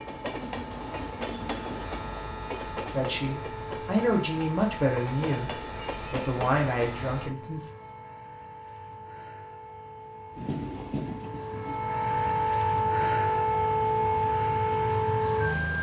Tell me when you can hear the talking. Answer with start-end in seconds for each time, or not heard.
2.9-7.6.